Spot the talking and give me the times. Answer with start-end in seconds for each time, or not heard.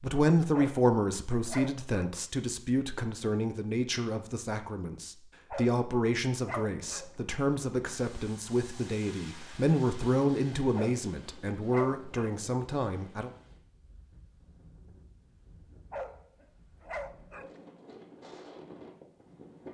0.0-13.3.